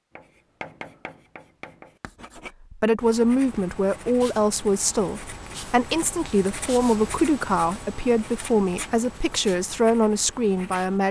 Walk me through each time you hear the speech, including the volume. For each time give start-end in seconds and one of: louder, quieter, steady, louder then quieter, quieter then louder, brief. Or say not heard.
2.7-11.0 steady.